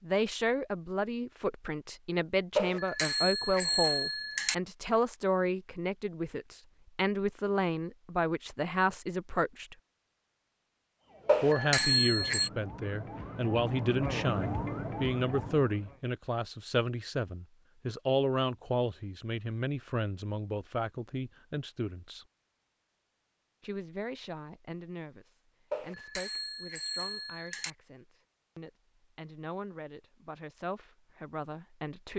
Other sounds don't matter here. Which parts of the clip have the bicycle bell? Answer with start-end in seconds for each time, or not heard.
2.5-4.5, 11.2-12.5, 25.7-27.7.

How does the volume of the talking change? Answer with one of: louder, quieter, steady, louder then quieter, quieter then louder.
quieter.